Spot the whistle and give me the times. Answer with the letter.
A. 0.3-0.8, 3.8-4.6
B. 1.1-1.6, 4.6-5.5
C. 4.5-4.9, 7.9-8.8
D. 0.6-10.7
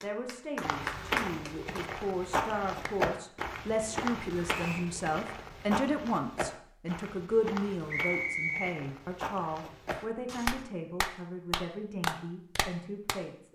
C.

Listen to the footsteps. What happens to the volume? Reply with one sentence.
The volume of the footsteps goes down.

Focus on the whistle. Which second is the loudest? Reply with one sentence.
The loudest moment of the whistle is at 8 seconds.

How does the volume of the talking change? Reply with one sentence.
The volume of the talking goes up, then down.